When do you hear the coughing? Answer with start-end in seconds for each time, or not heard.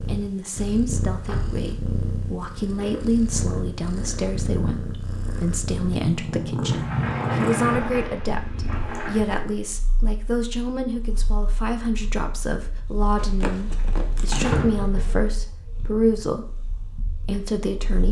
not heard.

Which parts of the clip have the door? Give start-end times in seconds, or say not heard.
1.1-1.6, 6.7-9.2, 14.3-15.2.